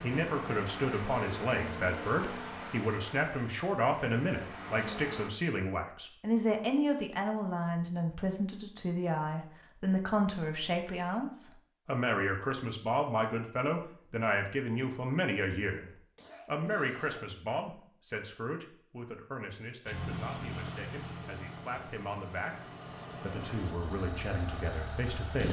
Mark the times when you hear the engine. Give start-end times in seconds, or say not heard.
0.0-5.3, 19.9-25.4.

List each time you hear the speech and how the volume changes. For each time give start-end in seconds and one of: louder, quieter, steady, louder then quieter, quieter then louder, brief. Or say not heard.
0.0-22.6 quieter
23.2-25.4 brief.